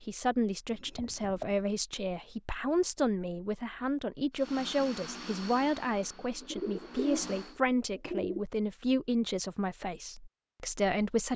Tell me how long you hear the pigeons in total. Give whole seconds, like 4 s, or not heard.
3 s.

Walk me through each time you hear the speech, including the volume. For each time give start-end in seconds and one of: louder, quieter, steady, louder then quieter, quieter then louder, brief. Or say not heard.
0.0-11.3 steady.